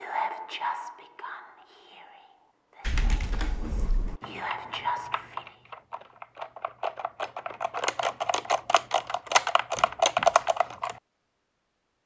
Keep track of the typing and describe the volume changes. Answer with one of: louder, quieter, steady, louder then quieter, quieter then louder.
louder.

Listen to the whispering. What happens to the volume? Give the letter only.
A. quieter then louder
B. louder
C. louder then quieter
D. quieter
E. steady
A.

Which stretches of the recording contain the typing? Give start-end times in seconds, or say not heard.
2.8-10.9.